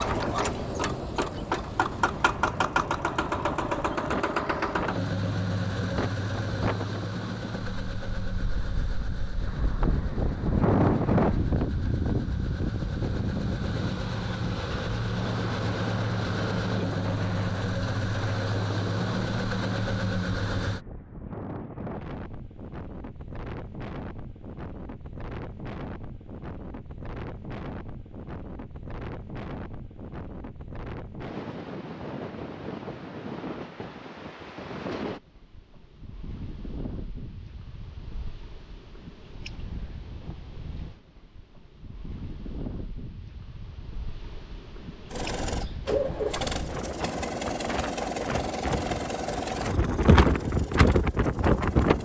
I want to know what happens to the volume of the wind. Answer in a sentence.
The loudness of the wind goes down, then up.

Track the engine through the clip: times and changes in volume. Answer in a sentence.
The engine can be heard from 0.0 to 20.8 s, getting quieter then louder; and from 45.1 to 52.0 s, getting quieter.